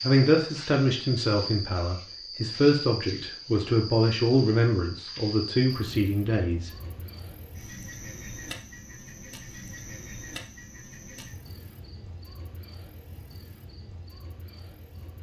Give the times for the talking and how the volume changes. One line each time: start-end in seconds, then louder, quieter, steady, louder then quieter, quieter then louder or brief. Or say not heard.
0.0-6.7 steady.